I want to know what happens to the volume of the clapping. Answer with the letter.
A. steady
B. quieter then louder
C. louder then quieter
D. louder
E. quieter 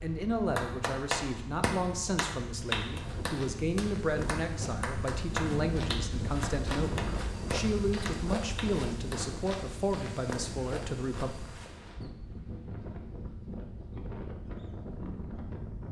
E.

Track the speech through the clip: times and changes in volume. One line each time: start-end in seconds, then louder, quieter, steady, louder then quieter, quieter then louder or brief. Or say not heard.
0.0-11.3 steady.